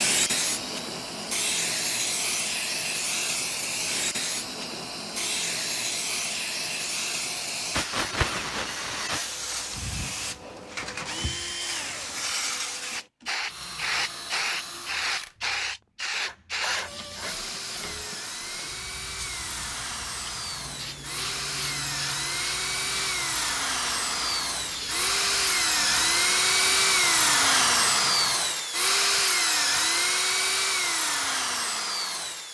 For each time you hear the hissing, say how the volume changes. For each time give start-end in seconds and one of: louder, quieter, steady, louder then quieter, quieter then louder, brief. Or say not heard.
0.0-28.4 quieter.